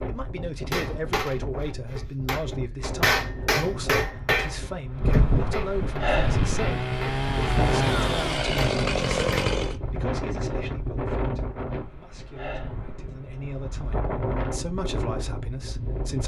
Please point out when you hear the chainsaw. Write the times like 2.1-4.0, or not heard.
6.0-9.8.